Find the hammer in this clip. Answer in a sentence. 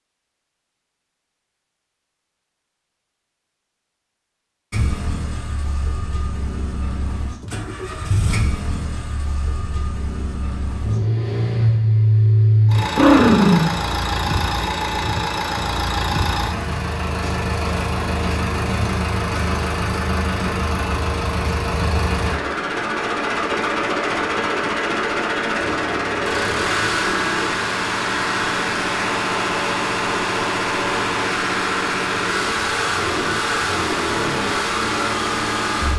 You can't hear the hammer here.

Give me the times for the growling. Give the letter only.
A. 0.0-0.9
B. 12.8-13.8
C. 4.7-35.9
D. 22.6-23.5
B.